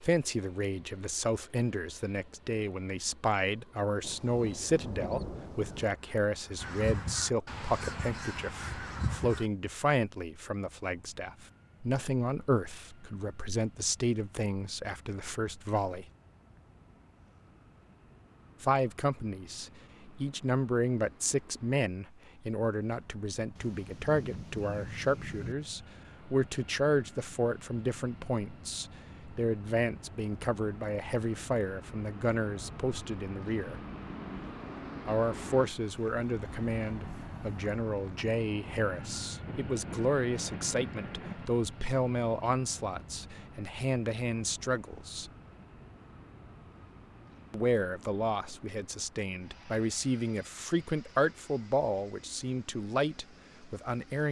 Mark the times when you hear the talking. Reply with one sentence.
You can hear the talking from 0.0 to 16.1 s, from 18.6 to 33.8 s, from 35.0 to 45.3 s and from 47.5 to 54.2 s.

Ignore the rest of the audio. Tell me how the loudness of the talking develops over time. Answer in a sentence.
The volume of the talking stays about the same.